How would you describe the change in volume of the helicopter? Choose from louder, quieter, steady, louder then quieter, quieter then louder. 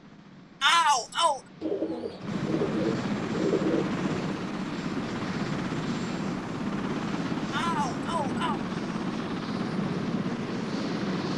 louder.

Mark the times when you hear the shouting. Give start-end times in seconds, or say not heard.
0.6-1.4, 7.5-8.6.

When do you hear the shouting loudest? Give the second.
1 s.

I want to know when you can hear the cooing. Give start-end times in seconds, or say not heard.
1.6-4.3.